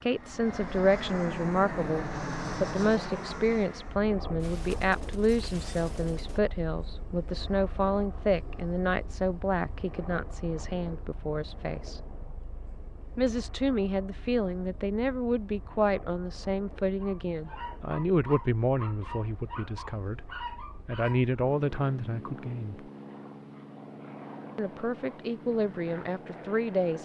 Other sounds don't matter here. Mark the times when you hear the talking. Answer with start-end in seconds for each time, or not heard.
0.0-12.1, 13.2-22.9, 24.6-27.0.